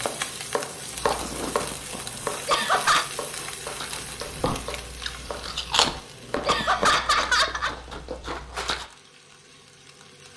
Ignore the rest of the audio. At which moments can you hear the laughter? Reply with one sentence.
The laughter can be heard from 2.5 to 3.0 s and from 6.5 to 7.8 s.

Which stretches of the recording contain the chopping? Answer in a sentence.
You can hear the chopping from 0.0 to 7.0 s.